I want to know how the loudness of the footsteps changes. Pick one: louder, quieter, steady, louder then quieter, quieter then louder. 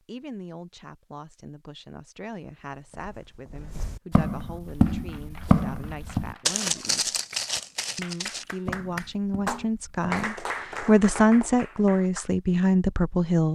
louder then quieter.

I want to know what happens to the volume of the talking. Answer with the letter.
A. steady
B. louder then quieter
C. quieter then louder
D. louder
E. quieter
D.